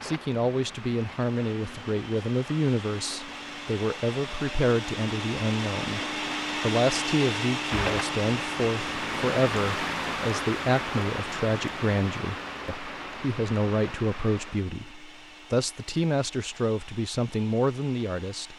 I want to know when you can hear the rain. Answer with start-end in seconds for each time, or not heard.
0.0-14.8.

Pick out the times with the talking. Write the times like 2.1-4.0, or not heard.
0.0-6.0, 6.6-18.5.